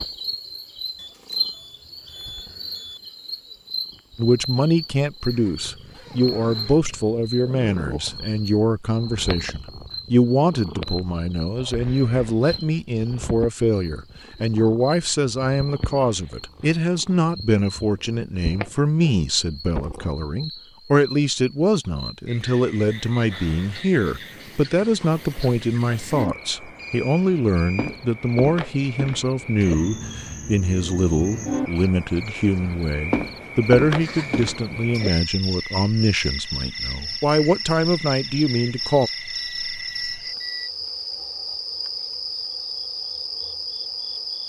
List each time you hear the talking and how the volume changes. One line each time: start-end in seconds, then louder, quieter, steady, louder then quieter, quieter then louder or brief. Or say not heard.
4.2-39.1 steady.